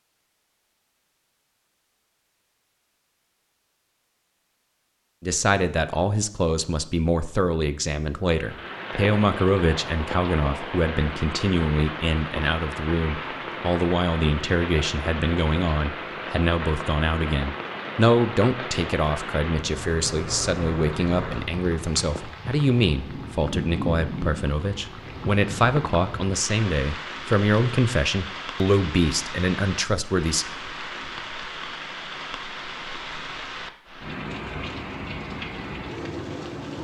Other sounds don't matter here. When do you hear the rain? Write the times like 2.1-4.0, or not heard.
8.3-36.7.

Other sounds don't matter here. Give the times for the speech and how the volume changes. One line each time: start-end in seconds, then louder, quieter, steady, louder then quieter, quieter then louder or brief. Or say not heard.
5.2-30.4 steady.